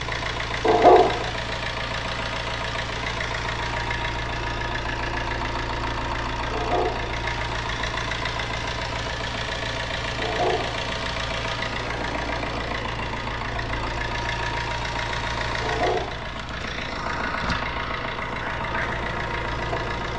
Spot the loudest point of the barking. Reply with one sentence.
The loudest moment of the barking is at 1 second.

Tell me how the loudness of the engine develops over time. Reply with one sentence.
The loudness of the engine stays about the same.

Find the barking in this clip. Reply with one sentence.
The barking can be heard from 0.6 to 1.3 s, from 6.5 to 7.2 s, from 10.2 to 10.8 s and from 15.6 to 16.3 s.